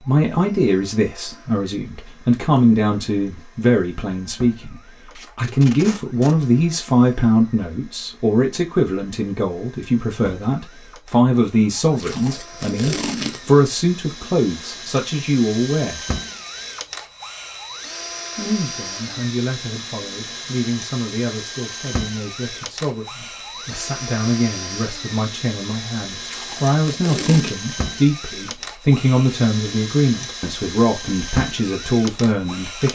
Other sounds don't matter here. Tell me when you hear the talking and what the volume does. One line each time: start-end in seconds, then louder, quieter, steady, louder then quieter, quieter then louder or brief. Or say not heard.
0.0-16.1 steady
18.4-32.8 louder.